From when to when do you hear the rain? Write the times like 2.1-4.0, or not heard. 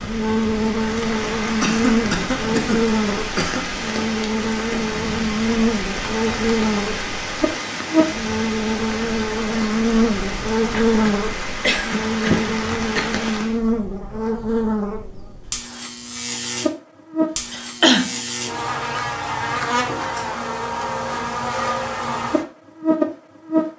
0.0-13.6.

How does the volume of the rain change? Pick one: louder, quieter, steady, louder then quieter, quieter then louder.
steady.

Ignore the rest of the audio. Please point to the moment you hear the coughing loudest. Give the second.
18 s.